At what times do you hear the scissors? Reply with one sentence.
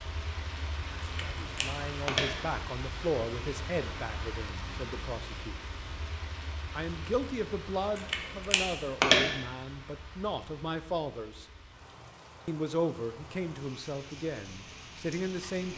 The scissors can be heard from 1.0 to 2.3 s and from 8.0 to 9.2 s.